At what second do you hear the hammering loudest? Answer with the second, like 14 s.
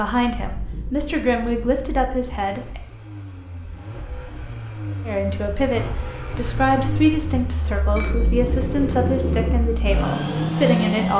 9 s.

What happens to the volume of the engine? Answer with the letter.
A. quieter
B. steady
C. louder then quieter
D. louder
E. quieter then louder
D.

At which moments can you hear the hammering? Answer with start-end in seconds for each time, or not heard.
0.5-2.0, 8.0-9.6.